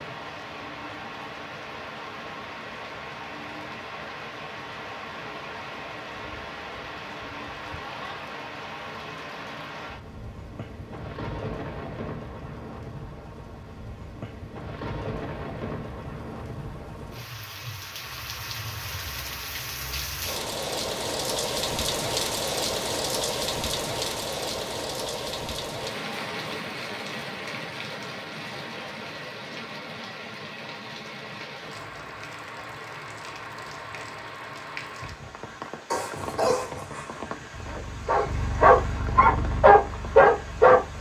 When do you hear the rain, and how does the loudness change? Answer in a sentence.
The rain can be heard from 0.0 to 40.9 s, getting louder then quieter.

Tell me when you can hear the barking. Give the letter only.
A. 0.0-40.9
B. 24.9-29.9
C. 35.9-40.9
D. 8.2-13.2
C.